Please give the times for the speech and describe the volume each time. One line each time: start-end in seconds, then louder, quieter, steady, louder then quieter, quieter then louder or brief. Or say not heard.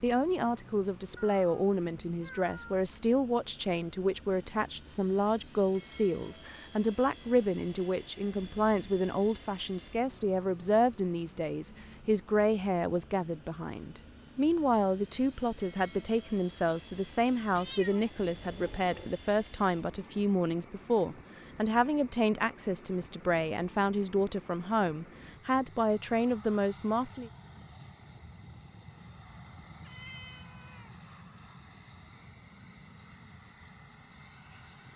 0.0-27.3 steady.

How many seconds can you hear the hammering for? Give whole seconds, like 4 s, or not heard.
not heard.